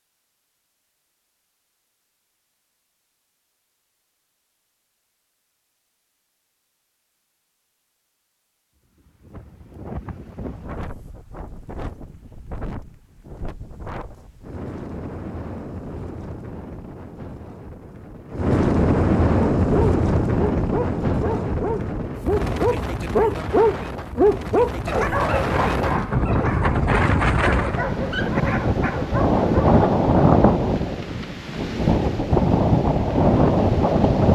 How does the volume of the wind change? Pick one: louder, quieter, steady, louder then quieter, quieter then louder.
louder.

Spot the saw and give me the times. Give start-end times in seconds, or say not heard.
not heard.